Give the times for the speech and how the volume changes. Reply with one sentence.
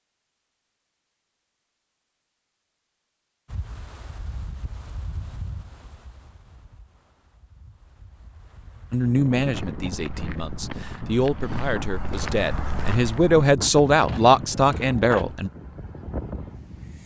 The speech can be heard from 8.9 to 15.5 s, getting louder.